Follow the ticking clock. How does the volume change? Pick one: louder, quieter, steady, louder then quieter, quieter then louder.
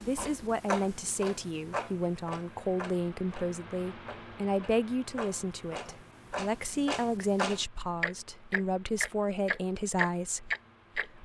quieter then louder.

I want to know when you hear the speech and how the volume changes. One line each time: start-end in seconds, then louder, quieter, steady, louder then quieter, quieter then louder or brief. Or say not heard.
0.0-11.2 steady.